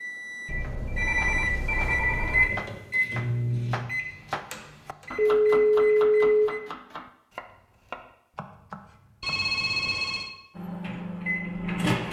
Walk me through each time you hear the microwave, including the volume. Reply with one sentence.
You can hear the microwave from 0.0 to 6.6 s, getting louder then quieter; and briefly from 10.6 to 12.0 s.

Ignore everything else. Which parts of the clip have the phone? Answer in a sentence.
You can hear the phone from 0.5 to 2.5 s, from 5.2 to 6.5 s and from 9.2 to 10.3 s.